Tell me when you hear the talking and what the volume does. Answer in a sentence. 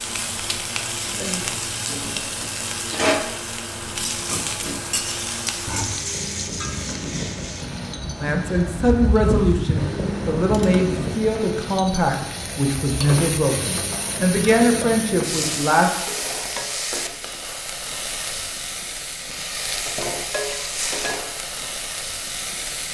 You can hear the talking from 8.2 to 15.9 s, at a steady volume.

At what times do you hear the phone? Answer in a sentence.
The phone can't be heard in this clip.